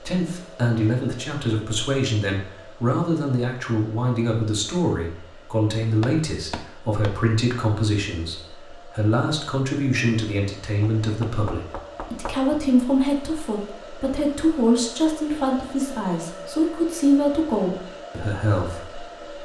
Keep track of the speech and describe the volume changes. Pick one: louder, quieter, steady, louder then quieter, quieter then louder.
steady.